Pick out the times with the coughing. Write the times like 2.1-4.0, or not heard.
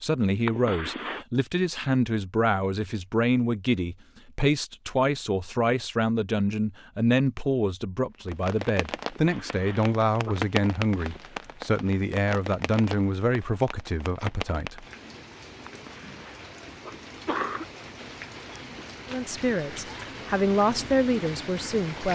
0.5-1.2, 9.1-10.3, 15.7-17.6.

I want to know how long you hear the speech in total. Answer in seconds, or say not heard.
18 s.